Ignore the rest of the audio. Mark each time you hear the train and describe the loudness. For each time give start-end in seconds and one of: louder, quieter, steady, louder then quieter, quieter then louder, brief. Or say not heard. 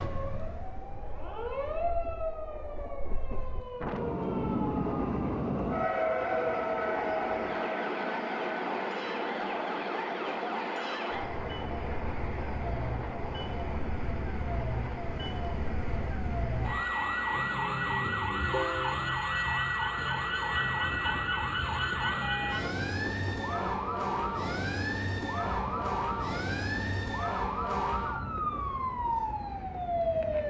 0.2-30.4 quieter.